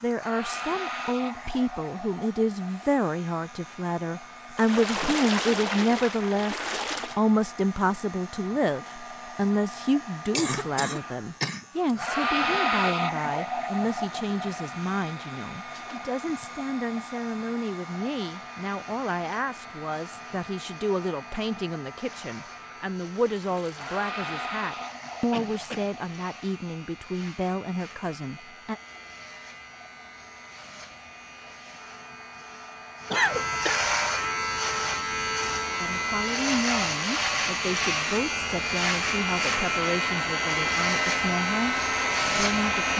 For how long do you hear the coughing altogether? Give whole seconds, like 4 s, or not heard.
3 s.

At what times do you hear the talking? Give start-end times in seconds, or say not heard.
0.0-28.8, 35.8-42.9.